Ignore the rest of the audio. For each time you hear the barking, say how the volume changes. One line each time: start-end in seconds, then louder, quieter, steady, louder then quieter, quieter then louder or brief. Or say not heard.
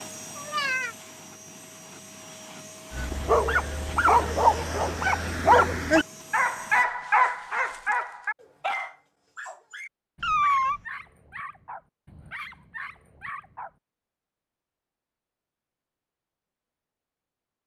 2.9-13.7 quieter.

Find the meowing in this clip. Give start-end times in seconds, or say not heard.
0.3-0.9, 10.2-10.8.